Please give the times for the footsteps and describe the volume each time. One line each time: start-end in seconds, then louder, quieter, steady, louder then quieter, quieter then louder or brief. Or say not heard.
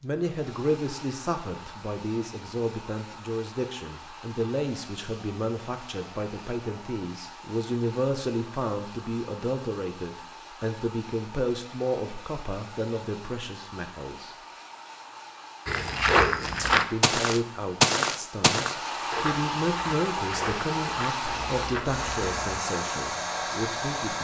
15.7-22.6 quieter.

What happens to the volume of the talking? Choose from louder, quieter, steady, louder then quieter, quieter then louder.
steady.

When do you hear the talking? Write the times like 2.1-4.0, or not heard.
0.0-14.3, 16.6-24.2.